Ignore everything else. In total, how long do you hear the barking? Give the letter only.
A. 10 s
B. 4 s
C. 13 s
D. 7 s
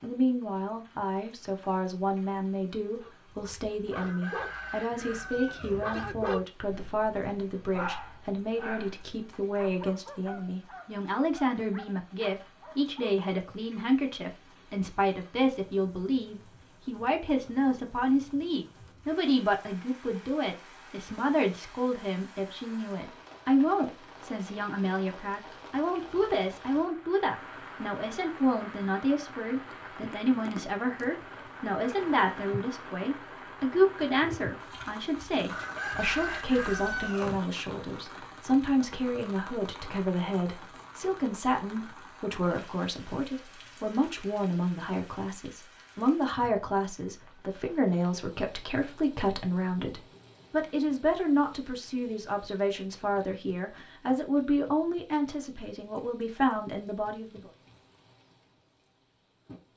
A.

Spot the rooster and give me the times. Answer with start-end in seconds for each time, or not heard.
4.0-5.8, 35.5-37.4.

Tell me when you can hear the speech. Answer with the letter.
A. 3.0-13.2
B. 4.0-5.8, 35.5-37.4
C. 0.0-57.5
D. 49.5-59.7
C.